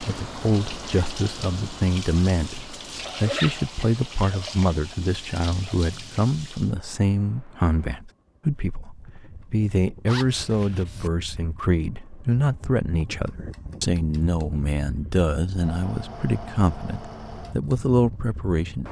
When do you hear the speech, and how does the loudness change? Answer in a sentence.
You can hear the speech from 0.0 to 18.8 s, at a steady volume.